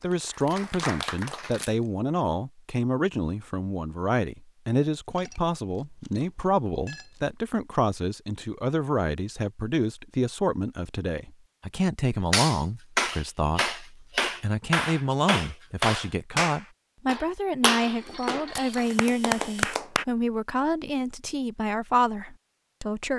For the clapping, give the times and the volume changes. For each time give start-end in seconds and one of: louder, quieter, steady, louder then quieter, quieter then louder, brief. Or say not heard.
0.0-1.7 brief
12.1-20.1 steady.